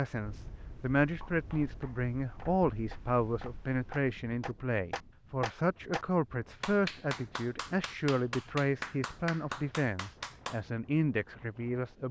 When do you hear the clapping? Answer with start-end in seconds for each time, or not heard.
1.2-10.6.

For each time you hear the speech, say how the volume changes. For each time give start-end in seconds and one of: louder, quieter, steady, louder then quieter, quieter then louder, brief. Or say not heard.
0.0-12.0 steady.